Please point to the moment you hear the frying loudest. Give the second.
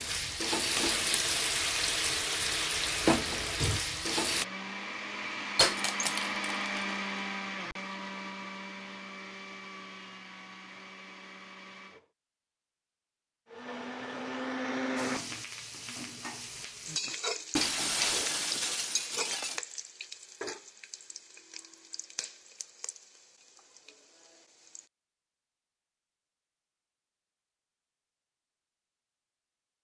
3 s.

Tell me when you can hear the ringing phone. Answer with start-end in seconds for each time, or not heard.
not heard.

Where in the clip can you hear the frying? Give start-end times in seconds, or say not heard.
0.0-4.5, 14.9-24.9.